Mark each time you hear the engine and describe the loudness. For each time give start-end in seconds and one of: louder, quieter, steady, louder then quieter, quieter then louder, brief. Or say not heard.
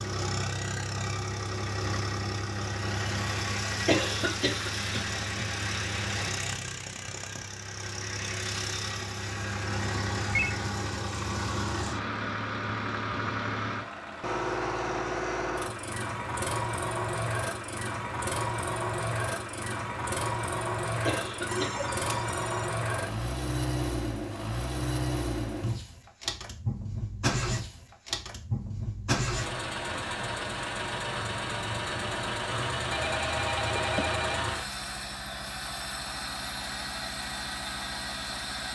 0.0-38.7 steady.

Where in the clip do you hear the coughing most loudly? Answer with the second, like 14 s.
4 s.